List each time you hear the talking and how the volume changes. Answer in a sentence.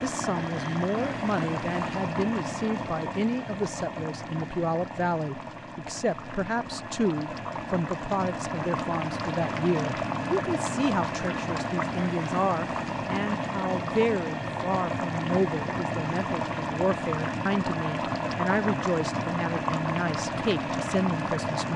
You can hear the talking from 0.0 to 21.7 s, at a steady volume.